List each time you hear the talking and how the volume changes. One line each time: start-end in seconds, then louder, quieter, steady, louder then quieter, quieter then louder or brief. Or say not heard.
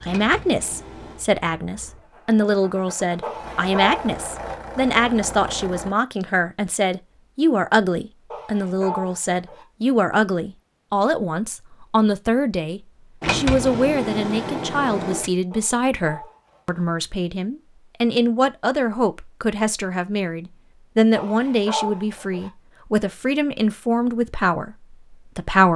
0.0-25.7 steady.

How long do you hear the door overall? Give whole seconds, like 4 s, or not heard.
3 s.